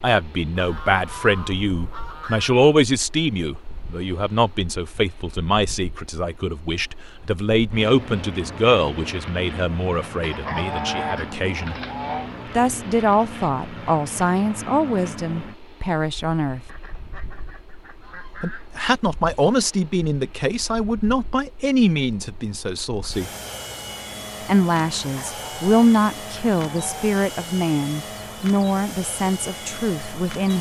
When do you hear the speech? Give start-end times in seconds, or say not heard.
0.0-11.8, 12.5-16.6, 18.4-23.3, 24.4-30.5.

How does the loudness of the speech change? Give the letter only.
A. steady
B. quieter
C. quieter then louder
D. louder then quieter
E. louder
A.